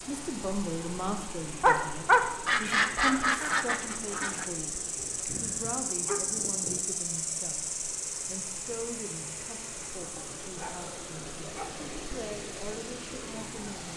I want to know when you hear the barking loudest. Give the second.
2 s.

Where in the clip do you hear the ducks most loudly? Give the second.
3 s.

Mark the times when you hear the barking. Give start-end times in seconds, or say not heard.
1.6-2.2, 5.0-6.8, 10.2-11.8.